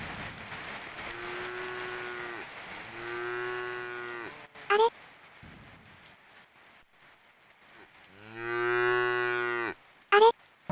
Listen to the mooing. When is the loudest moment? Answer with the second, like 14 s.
10 s.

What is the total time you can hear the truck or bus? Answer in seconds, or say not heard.
not heard.